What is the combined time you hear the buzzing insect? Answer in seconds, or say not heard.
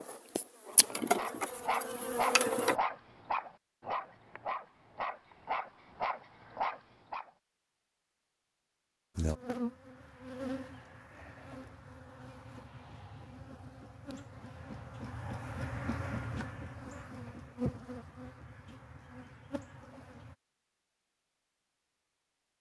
14 s.